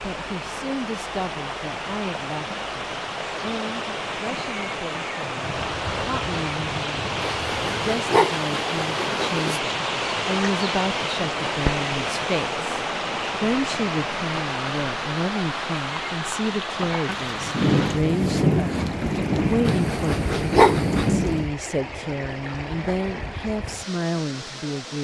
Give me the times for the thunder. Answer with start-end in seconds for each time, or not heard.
5.4-8.0, 17.1-21.5.